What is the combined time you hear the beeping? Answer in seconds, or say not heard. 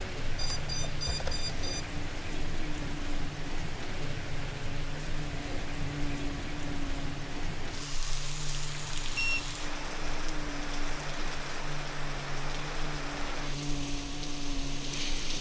2 s.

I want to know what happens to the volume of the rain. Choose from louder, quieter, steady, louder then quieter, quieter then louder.
steady.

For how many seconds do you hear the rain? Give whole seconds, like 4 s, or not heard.
15 s.